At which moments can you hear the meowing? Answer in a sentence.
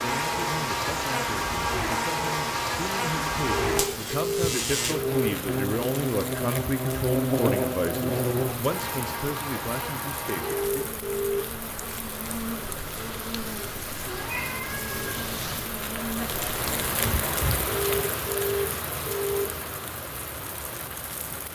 You can hear the meowing from 13.9 to 15.3 s.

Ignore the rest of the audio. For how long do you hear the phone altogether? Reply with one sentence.
The phone can be heard for 5 seconds in total.